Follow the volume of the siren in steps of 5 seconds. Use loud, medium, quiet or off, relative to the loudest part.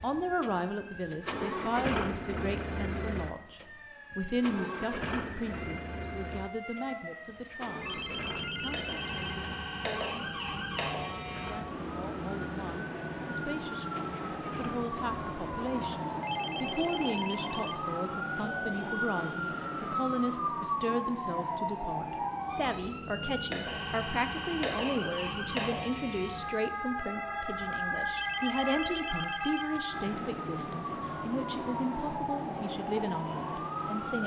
quiet, medium, loud, loud, loud, loud, loud.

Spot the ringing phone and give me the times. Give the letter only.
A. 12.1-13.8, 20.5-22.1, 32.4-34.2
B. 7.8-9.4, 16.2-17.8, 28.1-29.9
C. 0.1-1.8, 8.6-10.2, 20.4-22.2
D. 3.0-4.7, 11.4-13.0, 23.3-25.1
B.